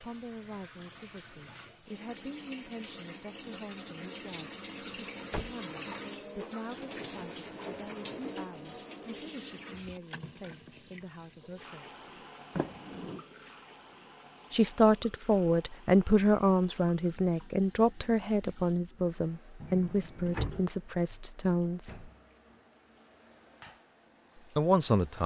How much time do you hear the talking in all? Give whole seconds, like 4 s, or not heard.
20 s.